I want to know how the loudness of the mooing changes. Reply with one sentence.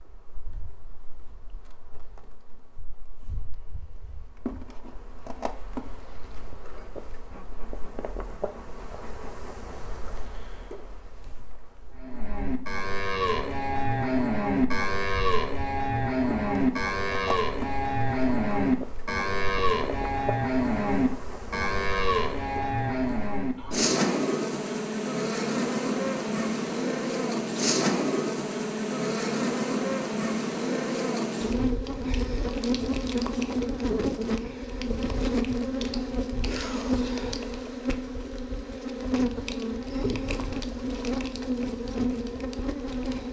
The volume of the mooing stays about the same.